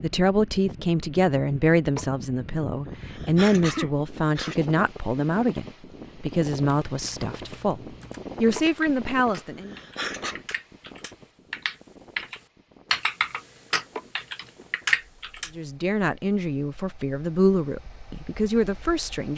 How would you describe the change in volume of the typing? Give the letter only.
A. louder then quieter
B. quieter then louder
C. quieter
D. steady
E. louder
E.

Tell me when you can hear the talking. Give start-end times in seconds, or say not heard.
0.0-9.8, 15.6-19.3.